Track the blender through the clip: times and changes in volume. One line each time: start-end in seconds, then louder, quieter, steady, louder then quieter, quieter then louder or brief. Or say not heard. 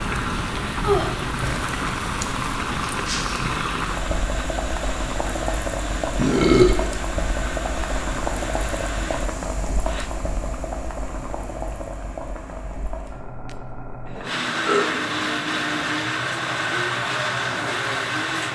0.0-10.1 steady
14.2-18.4 steady.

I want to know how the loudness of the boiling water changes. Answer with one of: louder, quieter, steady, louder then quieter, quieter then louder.
quieter.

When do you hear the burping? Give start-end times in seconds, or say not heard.
0.8-1.4, 6.2-6.8, 14.2-14.8.